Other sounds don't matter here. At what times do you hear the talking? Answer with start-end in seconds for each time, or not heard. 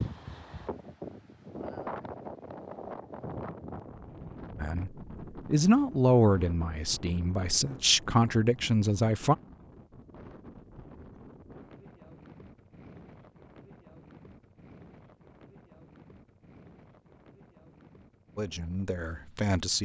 4.5-9.3, 18.4-19.8.